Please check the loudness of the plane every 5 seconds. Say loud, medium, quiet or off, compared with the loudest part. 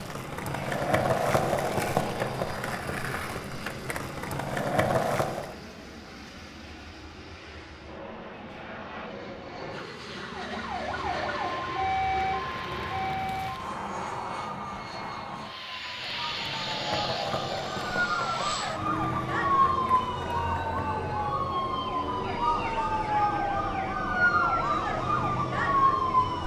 medium, medium, loud, loud, loud, loud.